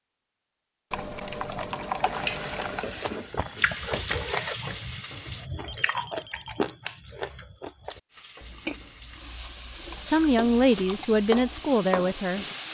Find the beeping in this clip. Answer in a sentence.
You can hear the beeping from 5.7 to 6.6 s.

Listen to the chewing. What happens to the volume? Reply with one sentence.
The loudness of the chewing goes down.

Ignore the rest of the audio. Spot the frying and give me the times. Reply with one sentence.
The frying can be heard from 2.0 to 5.5 s and from 8.1 to 12.6 s.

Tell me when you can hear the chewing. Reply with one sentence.
The chewing can be heard from 1.3 to 11.8 s.